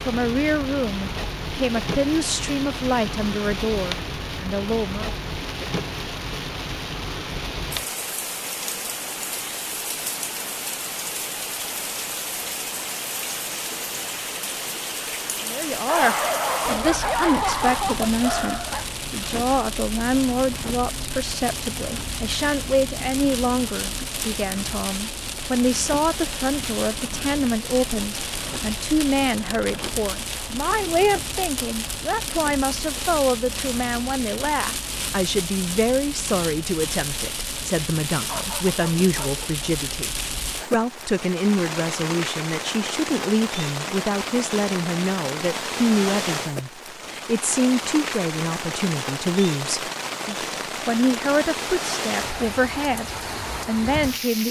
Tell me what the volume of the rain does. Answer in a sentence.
The loudness of the rain stays about the same.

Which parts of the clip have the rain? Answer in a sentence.
You can hear the rain from 0.0 to 54.4 s.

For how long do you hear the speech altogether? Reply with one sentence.
The speech can be heard for 44 seconds in total.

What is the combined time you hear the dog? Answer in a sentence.
You can hear the dog for 4 seconds altogether.